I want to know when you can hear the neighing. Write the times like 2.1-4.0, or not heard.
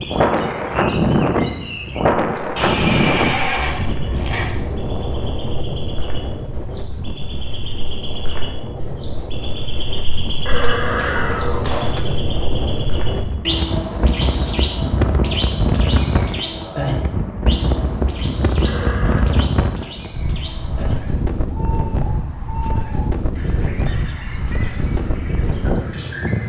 2.5-4.5, 10.4-12.0, 18.6-19.2.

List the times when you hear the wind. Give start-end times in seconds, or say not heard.
0.0-26.4.